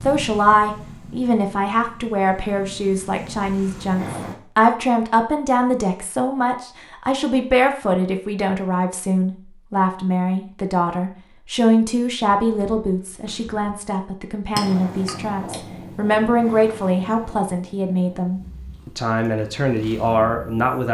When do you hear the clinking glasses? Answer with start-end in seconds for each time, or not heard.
14.6-15.6.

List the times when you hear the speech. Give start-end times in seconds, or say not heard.
0.1-20.9.